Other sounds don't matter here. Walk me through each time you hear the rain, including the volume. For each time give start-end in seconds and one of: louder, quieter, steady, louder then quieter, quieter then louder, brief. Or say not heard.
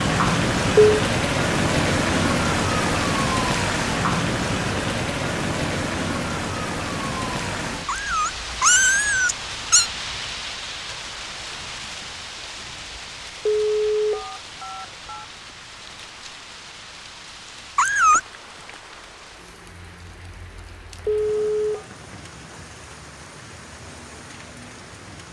0.0-25.2 quieter.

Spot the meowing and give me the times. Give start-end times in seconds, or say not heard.
7.8-9.8, 17.8-18.2.